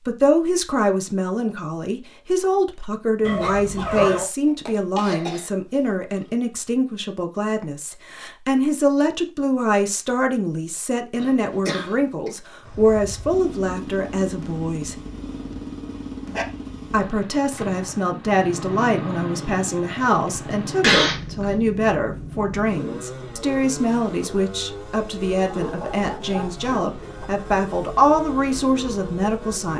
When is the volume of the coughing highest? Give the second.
21 s.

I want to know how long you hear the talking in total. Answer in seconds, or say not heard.
28 s.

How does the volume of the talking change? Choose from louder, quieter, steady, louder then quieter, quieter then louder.
steady.